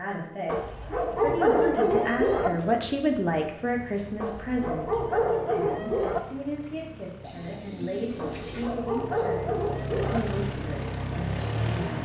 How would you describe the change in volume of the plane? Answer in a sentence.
The loudness of the plane goes up.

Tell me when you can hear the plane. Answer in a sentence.
You can hear the plane from 3.6 to 12.0 s.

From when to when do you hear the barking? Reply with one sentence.
The barking can be heard from 0.5 to 2.5 s, from 4.2 to 6.2 s and from 8.2 to 10.2 s.